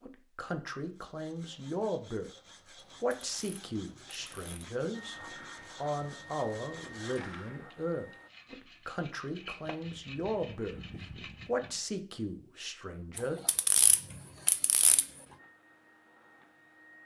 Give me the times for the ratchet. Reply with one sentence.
You can hear the ratchet from 2.8 to 4.7 s and from 13.2 to 15.1 s.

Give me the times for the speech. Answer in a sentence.
The speech can be heard from 0.0 to 2.3 s, from 3.0 to 5.2 s, from 5.8 to 10.8 s and from 11.4 to 13.4 s.